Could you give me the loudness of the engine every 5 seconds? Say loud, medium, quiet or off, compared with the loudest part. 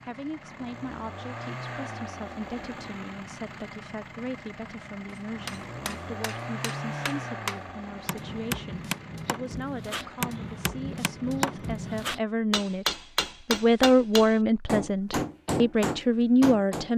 loud, loud, medium, off.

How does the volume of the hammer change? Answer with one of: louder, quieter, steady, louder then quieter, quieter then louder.
louder.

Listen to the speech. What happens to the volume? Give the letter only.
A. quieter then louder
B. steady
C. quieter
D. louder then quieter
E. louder
E.